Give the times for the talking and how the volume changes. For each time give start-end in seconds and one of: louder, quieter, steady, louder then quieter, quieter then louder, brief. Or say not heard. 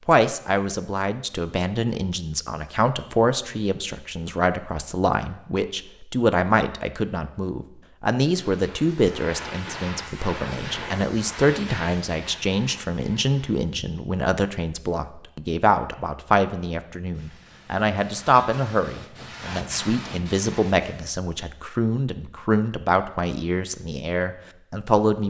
0.1-25.2 steady.